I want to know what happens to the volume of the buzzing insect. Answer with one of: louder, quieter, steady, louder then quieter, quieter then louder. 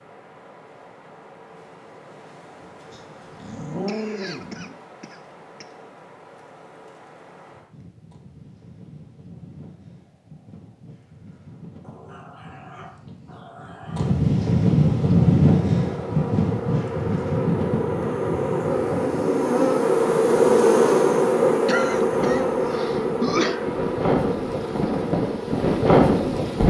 louder then quieter.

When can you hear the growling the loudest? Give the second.
4 s.